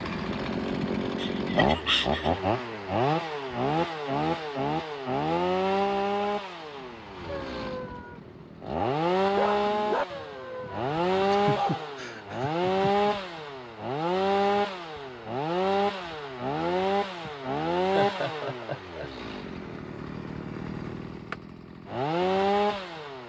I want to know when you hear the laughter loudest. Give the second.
2 s.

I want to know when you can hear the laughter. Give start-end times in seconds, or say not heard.
1.1-2.4, 11.3-13.1, 17.2-19.1.